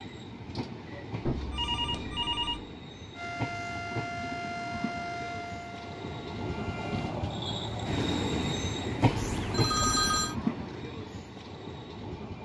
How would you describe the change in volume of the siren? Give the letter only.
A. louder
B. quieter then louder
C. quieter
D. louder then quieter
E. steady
C.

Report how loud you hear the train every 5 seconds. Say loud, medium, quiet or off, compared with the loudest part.
medium, loud, loud.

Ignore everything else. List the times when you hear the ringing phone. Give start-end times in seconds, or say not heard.
1.2-2.7, 9.1-10.3.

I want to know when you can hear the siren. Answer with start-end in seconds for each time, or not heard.
3.1-7.2.